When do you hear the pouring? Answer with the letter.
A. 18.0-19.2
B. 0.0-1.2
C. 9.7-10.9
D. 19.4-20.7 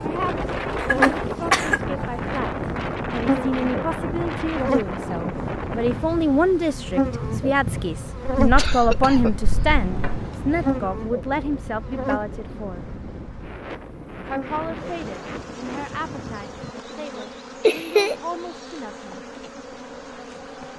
C.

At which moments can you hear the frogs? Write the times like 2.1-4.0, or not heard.
not heard.